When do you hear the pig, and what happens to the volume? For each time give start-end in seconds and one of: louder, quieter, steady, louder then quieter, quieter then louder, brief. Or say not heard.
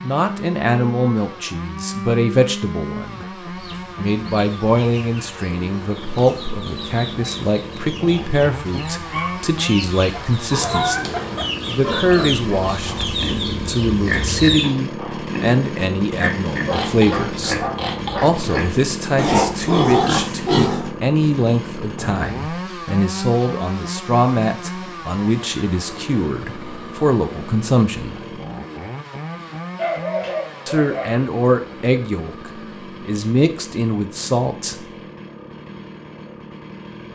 10.3-20.9 louder.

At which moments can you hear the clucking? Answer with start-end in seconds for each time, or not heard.
3.5-14.7.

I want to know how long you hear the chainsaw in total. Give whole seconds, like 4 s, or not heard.
37 s.